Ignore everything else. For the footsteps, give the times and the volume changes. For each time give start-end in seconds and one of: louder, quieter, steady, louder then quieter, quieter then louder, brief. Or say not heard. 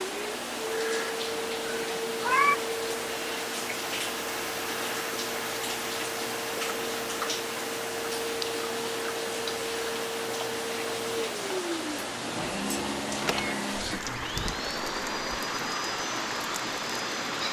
not heard.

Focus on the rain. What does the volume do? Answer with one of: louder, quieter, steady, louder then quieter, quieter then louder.
steady.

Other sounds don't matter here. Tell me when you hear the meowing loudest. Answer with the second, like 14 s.
2 s.